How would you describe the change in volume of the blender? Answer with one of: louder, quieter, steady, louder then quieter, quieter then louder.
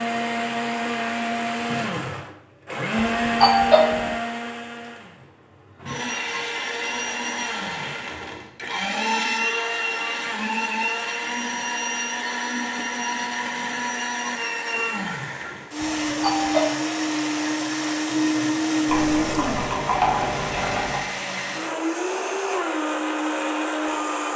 steady.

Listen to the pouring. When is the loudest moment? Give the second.
20 s.